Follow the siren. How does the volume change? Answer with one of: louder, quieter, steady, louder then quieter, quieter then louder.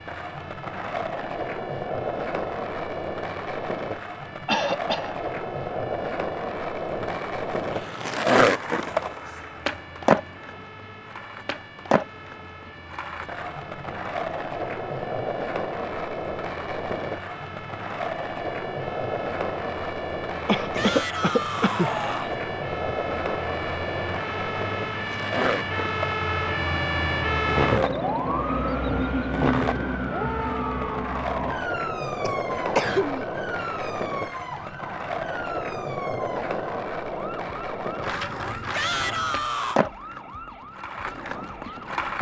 louder then quieter.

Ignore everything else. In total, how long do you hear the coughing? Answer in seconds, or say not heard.
3 s.